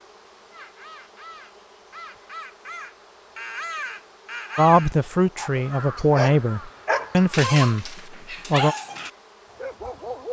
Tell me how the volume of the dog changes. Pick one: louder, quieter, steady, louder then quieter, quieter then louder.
quieter.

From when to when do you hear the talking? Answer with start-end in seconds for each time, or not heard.
4.5-8.8.